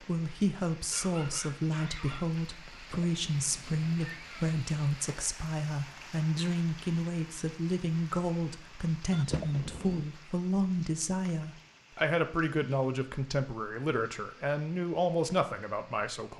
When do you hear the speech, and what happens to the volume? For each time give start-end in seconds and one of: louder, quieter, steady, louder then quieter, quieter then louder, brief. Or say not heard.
0.0-16.3 steady.